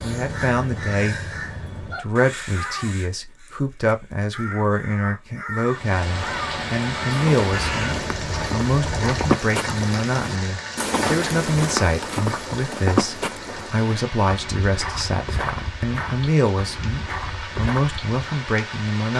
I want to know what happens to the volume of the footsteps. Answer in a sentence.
The loudness of the footsteps goes down.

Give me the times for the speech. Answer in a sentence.
The speech can be heard from 0.0 to 19.1 s.